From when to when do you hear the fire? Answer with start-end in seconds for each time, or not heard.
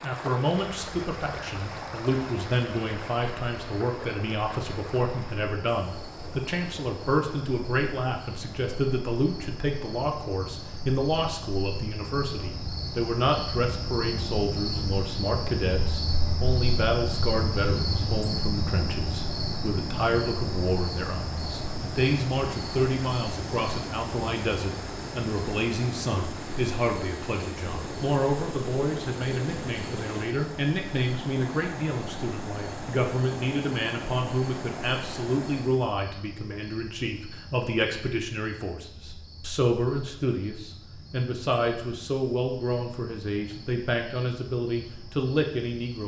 not heard.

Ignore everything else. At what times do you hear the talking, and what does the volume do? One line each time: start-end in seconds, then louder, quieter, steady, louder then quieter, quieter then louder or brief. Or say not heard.
0.0-46.0 steady.